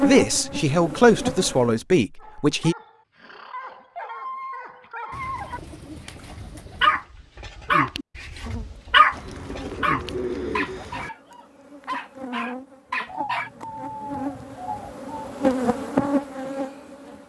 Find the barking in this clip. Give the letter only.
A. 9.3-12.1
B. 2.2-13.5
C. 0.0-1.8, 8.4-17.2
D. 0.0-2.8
B.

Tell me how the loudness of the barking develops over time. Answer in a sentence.
The loudness of the barking goes up, then down.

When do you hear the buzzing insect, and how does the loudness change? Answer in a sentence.
The buzzing insect can be heard briefly from 0.0 to 1.8 s; and from 8.4 to 17.2 s, getting louder.